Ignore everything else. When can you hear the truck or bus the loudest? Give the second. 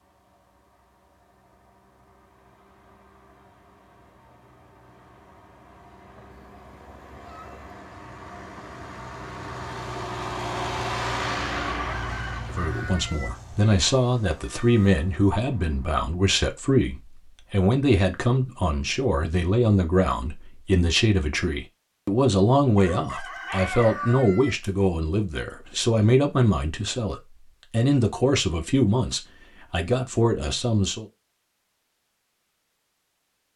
11 s.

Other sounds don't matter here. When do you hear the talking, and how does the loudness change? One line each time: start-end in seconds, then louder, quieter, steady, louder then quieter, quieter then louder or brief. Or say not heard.
12.4-31.1 steady.